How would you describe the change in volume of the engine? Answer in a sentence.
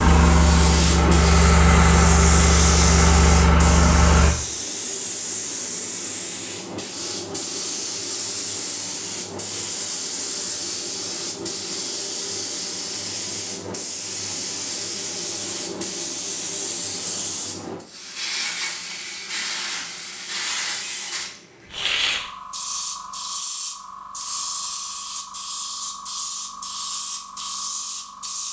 The loudness of the engine stays about the same.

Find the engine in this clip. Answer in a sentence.
The engine can be heard from 0.0 to 4.3 s.